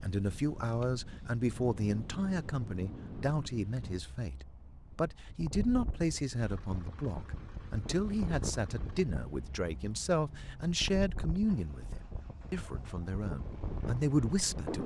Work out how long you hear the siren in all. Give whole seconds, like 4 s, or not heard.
not heard.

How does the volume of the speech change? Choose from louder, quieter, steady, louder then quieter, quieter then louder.
steady.